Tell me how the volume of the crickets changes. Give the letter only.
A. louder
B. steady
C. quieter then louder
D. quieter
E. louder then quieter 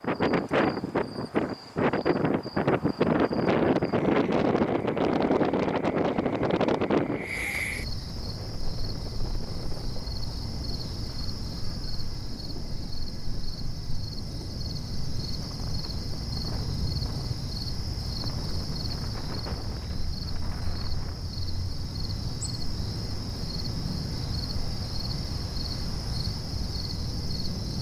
A.